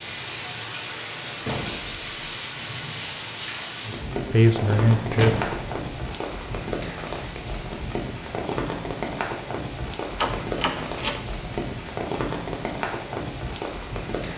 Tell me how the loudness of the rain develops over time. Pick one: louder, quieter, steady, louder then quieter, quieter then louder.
steady.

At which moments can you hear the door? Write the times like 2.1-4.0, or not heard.
1.4-2.0, 5.2-5.8, 10.2-11.2.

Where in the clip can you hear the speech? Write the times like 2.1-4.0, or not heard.
3.8-5.5.